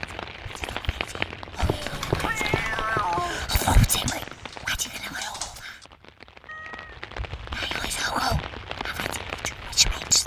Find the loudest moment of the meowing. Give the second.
3 s.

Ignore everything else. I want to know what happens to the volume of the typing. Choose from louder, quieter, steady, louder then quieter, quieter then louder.
quieter then louder.